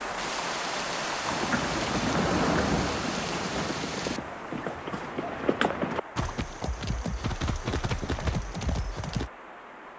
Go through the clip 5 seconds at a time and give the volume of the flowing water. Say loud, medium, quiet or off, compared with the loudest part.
loud, medium.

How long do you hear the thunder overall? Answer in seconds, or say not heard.
4 s.